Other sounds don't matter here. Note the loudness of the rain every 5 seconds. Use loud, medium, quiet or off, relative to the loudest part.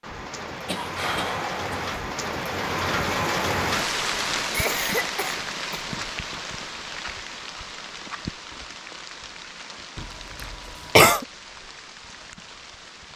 loud, medium, quiet.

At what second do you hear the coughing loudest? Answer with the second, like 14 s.
11 s.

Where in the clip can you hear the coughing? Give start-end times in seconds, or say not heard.
0.7-1.8, 4.5-5.8, 9.9-11.2.